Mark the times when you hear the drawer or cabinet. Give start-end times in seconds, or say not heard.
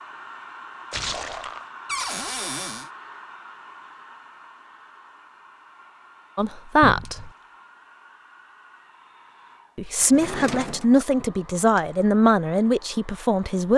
1.9-2.9, 6.8-7.3, 10.0-10.9.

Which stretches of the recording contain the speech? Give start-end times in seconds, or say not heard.
6.3-7.3, 9.8-13.7.